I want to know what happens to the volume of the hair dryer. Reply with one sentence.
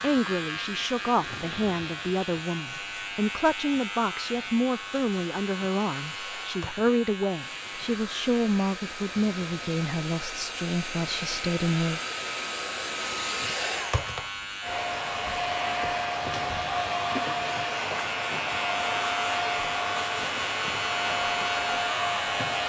The volume of the hair dryer goes up.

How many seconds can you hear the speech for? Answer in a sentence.
You can hear the speech for 12 seconds altogether.